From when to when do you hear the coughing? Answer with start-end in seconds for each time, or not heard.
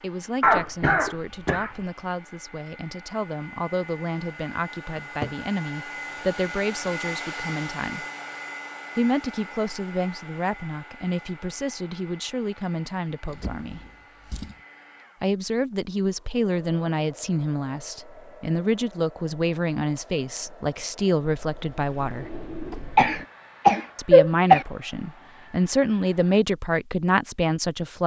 0.4-1.7, 22.9-24.6.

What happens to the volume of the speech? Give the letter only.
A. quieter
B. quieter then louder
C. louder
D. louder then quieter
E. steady
C.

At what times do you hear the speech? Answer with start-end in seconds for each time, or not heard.
0.0-8.1, 8.9-13.8, 15.2-22.3, 23.9-28.0.